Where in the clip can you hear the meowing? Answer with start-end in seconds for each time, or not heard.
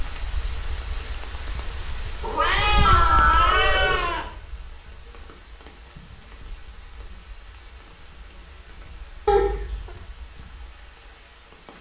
2.2-4.2, 9.2-9.9.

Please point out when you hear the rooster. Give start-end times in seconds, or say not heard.
2.9-4.0.